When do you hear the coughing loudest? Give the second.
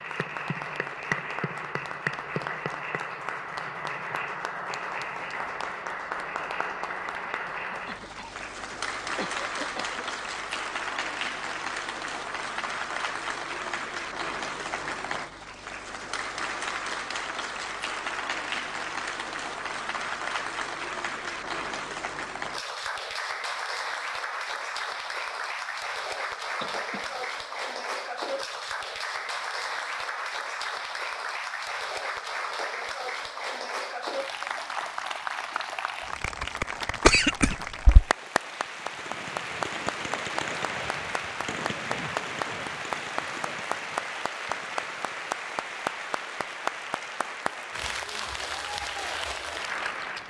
37 s.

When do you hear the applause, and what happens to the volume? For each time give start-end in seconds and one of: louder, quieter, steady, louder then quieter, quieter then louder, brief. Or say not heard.
0.0-50.2 steady.